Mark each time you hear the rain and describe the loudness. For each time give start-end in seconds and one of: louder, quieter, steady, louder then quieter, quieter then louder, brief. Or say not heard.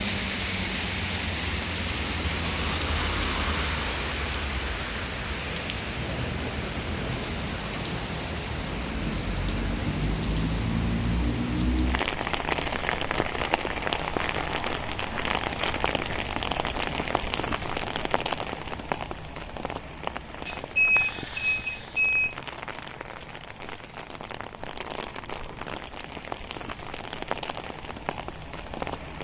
0.0-29.1 quieter.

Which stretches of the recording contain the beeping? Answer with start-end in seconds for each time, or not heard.
20.4-22.4.